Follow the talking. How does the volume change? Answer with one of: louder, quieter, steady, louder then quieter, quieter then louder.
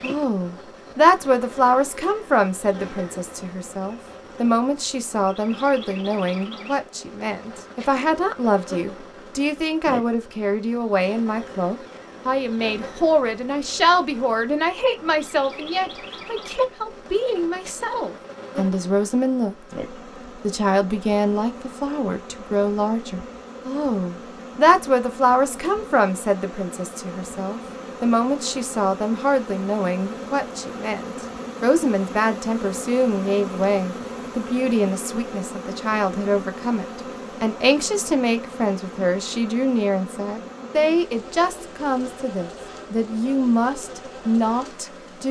steady.